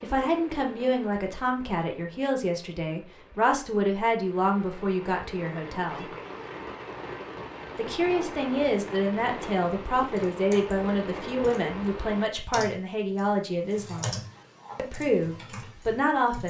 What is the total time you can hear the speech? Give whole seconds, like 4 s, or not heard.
15 s.